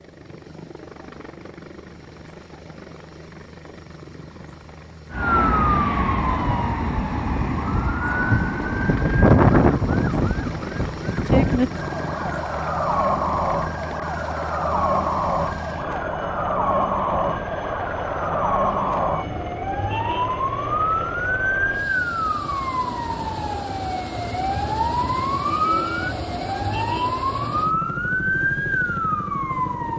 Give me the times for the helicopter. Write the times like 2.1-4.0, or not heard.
0.0-29.9.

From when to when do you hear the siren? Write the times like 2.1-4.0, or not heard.
5.1-29.9.